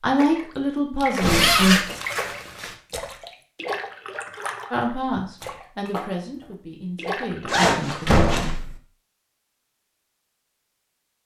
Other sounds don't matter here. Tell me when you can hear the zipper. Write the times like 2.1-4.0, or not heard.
1.1-2.8, 7.5-8.6.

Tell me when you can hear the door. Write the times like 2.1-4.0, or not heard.
1.2-1.7, 8.1-8.8.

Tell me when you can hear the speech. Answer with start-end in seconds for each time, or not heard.
0.0-1.8, 4.7-8.6.